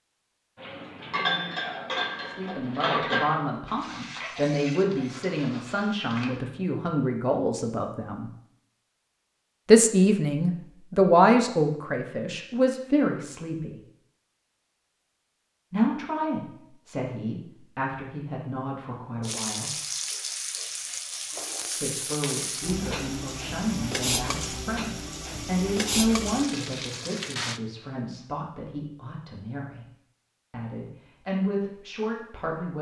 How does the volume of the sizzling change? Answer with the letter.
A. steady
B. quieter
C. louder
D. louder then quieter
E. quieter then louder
A.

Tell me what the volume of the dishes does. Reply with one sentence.
The volume of the dishes goes down.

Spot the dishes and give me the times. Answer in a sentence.
You can hear the dishes from 0.6 to 6.4 s.